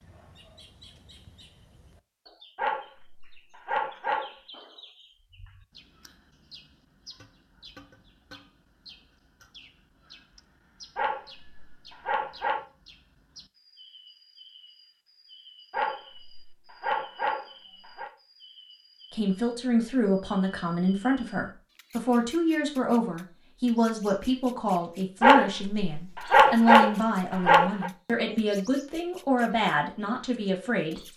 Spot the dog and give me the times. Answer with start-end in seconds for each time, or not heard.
2.5-4.3, 10.9-12.6, 15.7-18.1, 25.2-27.9.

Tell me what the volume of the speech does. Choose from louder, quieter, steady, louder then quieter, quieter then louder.
steady.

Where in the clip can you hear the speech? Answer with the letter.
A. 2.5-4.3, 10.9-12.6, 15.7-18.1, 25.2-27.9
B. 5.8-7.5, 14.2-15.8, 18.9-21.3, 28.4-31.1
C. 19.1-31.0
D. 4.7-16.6
C.